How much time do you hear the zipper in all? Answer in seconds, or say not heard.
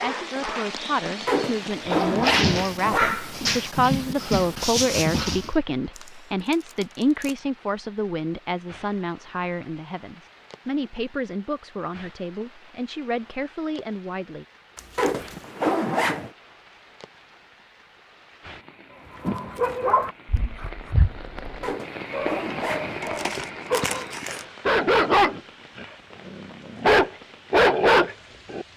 5 s.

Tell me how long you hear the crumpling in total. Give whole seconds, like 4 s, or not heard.
4 s.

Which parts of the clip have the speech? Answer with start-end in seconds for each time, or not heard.
0.0-14.4.